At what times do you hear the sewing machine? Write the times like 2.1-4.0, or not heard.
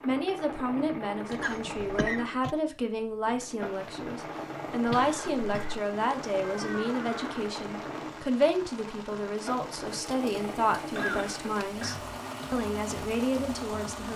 0.0-14.1.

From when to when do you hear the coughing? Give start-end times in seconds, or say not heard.
1.4-2.2, 4.8-5.8, 10.9-12.0.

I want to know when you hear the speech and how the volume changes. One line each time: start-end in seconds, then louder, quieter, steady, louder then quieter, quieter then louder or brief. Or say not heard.
0.0-14.1 steady.